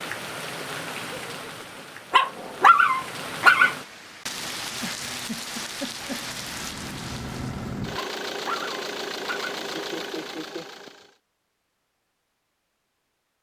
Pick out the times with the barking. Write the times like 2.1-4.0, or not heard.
2.1-3.8, 8.0-10.1.